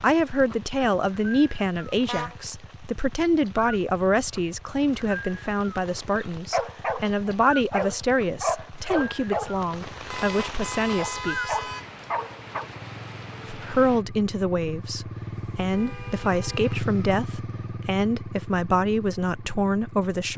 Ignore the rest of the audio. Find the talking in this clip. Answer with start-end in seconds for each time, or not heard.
0.0-11.6, 13.5-20.3.